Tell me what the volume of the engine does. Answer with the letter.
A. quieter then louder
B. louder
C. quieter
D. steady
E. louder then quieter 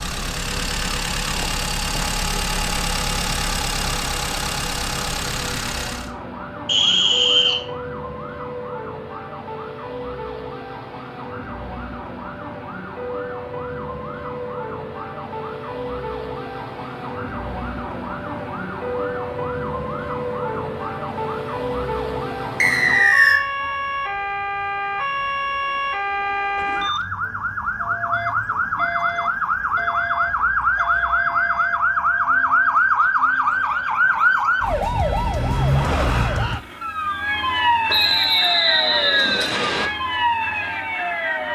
D.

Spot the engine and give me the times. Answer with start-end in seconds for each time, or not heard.
0.0-6.1.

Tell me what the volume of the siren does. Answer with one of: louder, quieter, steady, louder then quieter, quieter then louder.
louder.